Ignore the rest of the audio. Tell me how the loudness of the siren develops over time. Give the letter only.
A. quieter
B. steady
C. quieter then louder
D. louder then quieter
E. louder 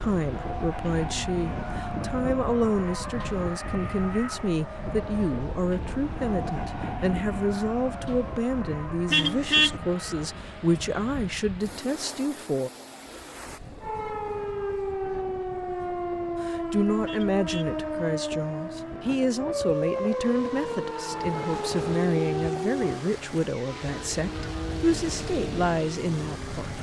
B.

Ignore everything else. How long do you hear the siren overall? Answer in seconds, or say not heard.
9 s.